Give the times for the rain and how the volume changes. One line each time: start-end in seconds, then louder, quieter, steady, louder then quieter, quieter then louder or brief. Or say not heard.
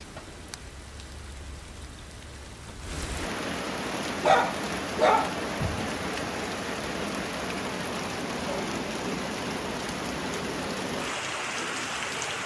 0.0-12.4 louder.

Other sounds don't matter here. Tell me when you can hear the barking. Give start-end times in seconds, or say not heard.
4.2-6.0.